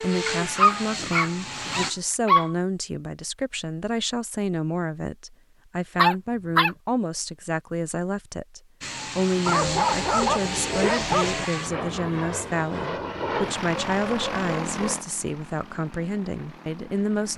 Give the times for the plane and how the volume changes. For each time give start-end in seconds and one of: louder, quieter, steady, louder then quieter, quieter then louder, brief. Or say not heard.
0.0-1.9 brief
8.8-17.3 quieter.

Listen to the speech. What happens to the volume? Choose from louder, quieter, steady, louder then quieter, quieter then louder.
steady.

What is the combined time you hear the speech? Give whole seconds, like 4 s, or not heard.
17 s.